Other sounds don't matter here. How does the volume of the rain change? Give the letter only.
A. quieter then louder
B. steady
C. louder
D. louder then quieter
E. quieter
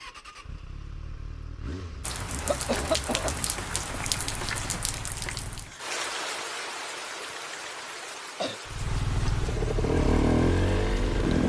E.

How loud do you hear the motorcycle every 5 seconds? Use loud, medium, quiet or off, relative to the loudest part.
quiet, medium, loud.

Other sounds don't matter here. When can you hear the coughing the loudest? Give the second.
3 s.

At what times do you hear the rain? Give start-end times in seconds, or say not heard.
2.0-11.4.